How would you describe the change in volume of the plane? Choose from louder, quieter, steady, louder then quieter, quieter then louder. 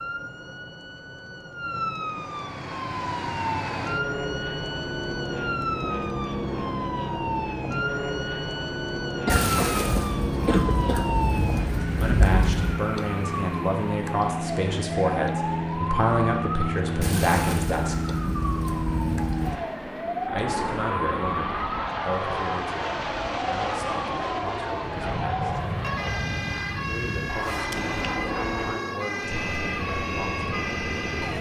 steady.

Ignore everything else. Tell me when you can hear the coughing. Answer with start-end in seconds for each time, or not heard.
9.2-11.2.